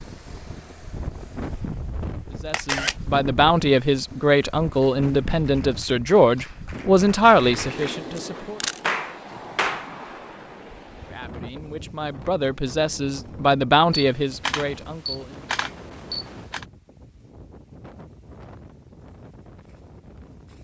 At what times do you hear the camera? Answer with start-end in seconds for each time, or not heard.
2.5-3.0, 8.2-8.8, 13.9-16.6.